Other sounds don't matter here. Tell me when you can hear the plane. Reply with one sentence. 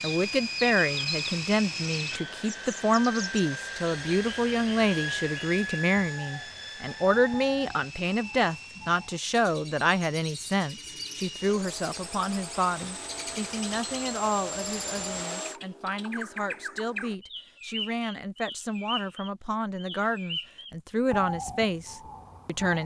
You can hear the plane from 0.0 to 15.6 s.